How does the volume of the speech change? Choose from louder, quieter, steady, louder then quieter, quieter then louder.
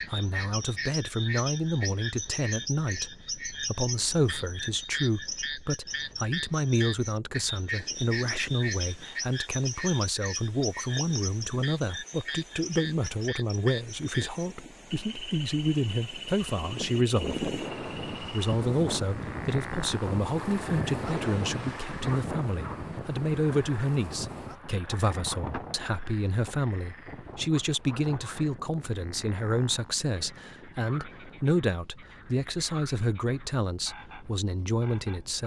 steady.